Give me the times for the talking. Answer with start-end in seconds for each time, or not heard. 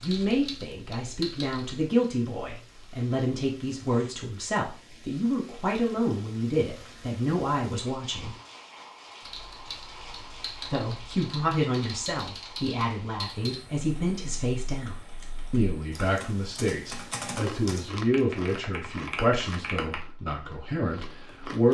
0.0-8.3, 10.7-21.7.